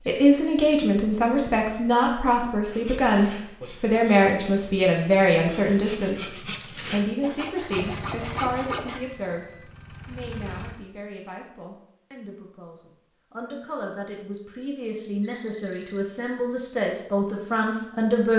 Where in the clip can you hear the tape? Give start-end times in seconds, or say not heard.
not heard.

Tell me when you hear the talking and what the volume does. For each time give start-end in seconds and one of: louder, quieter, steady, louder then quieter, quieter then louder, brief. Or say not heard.
0.1-18.3 quieter then louder.